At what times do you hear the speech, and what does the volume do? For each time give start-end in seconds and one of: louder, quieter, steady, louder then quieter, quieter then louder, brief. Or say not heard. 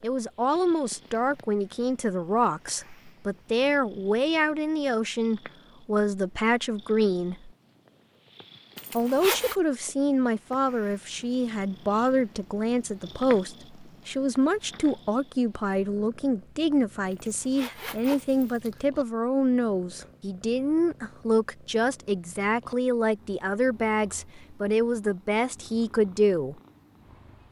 0.0-7.5 steady
8.9-26.6 steady.